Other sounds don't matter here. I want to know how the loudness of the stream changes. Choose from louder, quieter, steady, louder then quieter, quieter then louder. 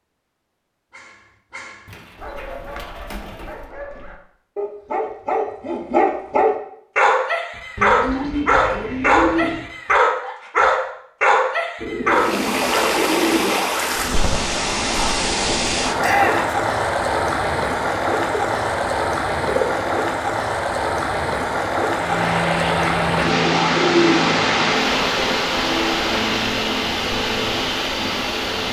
steady.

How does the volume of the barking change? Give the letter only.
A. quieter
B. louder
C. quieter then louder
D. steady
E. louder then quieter
B.